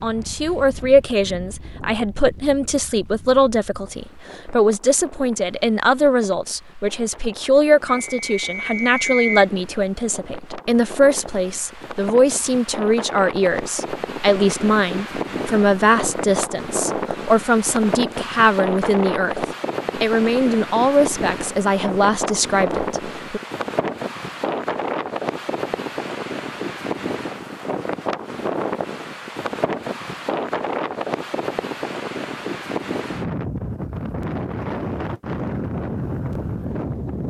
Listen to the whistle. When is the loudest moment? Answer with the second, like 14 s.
9 s.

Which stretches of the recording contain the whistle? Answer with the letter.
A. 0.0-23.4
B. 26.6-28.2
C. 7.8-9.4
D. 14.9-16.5
C.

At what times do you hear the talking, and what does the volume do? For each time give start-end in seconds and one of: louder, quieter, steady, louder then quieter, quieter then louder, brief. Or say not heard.
0.0-23.4 steady.